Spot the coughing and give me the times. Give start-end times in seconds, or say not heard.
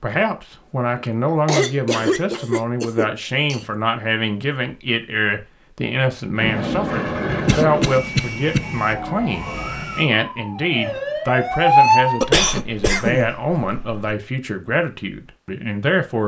0.9-3.6, 7.5-8.6, 12.2-14.1.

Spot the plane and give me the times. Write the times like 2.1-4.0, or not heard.
6.3-10.1.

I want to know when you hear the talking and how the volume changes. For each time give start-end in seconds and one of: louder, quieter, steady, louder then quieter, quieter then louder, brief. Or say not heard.
0.0-16.2 steady.